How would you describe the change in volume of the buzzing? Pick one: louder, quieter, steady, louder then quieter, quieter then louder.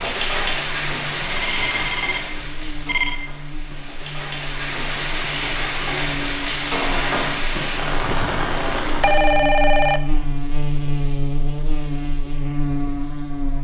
louder.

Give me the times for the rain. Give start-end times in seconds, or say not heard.
0.0-9.2.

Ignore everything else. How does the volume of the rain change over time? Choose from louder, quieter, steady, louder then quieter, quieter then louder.
quieter then louder.